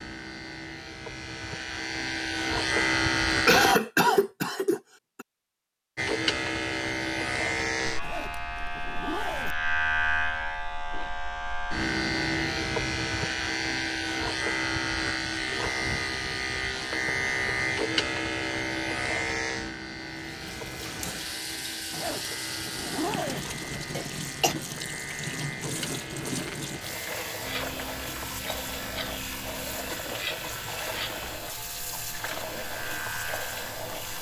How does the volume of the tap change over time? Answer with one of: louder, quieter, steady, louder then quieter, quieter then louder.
steady.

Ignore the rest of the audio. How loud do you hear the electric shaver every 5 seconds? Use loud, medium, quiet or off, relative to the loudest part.
loud, loud, loud, loud, medium, medium, medium.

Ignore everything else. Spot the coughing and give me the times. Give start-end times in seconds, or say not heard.
3.5-5.2, 23.9-24.6.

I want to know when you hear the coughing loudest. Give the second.
4 s.